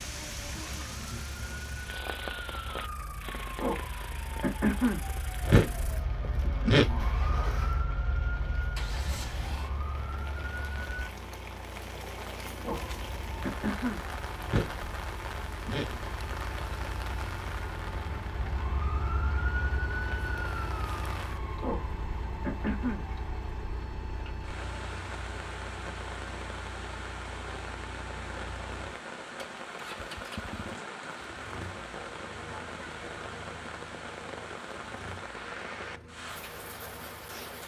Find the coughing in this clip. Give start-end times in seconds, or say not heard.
not heard.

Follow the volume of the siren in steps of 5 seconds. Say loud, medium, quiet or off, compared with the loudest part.
loud, loud, medium, medium, medium, off, off, off.